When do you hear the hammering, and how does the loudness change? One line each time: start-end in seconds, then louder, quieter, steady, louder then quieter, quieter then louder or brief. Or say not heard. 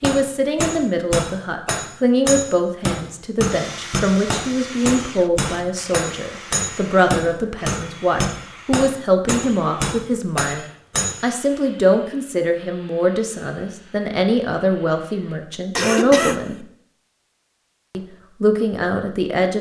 0.0-11.2 steady.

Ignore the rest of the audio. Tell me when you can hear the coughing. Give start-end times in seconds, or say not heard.
15.8-16.4.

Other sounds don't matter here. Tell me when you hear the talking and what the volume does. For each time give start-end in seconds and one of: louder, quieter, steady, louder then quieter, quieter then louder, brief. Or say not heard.
0.0-16.6 steady
17.9-19.5 brief.